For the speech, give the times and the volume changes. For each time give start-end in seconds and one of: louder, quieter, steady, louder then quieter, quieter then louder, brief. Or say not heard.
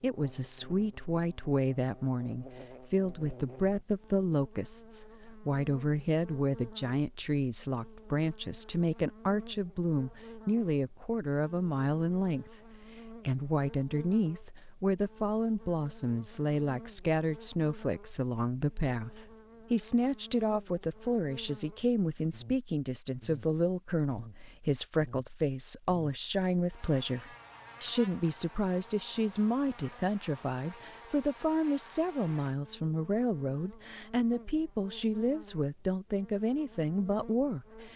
0.0-37.9 steady.